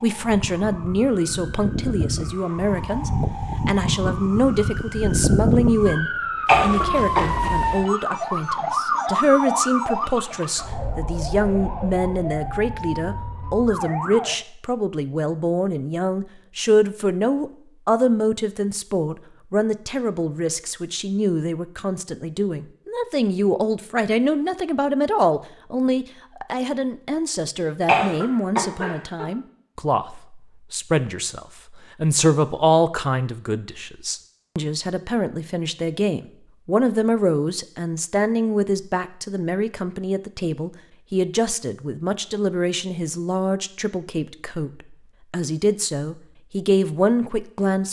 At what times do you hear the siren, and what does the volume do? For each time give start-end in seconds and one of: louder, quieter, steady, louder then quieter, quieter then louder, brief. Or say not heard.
0.0-14.3 louder then quieter.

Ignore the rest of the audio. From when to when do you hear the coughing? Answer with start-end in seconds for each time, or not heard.
6.5-7.2, 27.9-29.2.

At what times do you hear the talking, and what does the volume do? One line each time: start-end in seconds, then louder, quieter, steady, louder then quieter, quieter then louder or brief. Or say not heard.
0.0-47.8 steady.